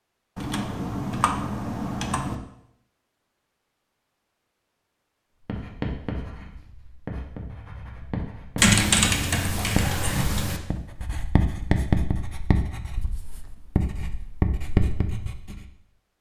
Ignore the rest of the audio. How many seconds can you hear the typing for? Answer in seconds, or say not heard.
4 s.